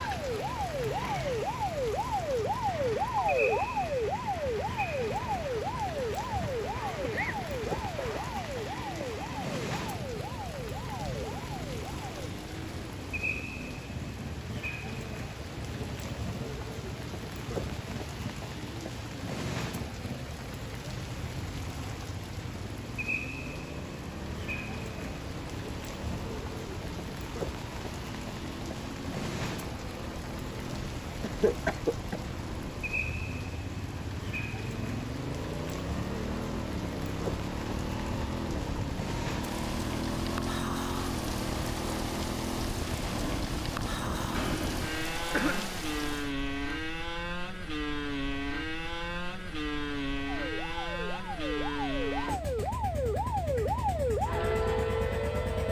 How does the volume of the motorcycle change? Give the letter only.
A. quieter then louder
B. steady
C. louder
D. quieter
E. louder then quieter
C.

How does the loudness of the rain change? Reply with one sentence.
The volume of the rain stays about the same.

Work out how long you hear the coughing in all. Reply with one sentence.
You can hear the coughing for 4 seconds altogether.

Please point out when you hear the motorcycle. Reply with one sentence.
The motorcycle can be heard from 0.0 to 55.6 s.